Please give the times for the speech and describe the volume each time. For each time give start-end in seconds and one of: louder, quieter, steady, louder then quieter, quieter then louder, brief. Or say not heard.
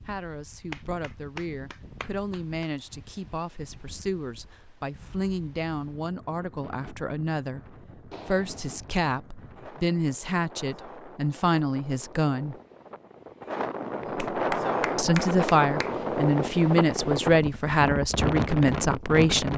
0.1-12.6 louder
14.9-19.5 steady.